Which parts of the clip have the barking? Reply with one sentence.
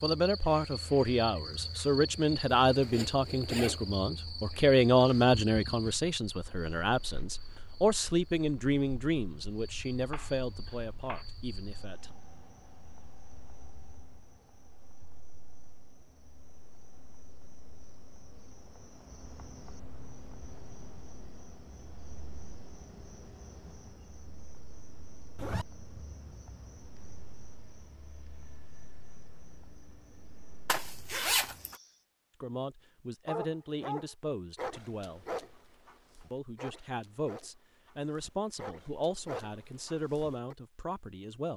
The barking can be heard from 33.2 to 40.5 s.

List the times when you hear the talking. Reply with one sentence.
You can hear the talking from 0.0 to 12.1 s, from 32.4 to 35.2 s and from 36.3 to 41.5 s.